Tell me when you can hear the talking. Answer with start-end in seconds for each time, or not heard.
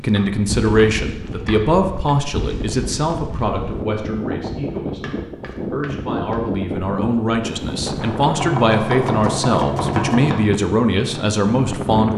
0.0-12.1.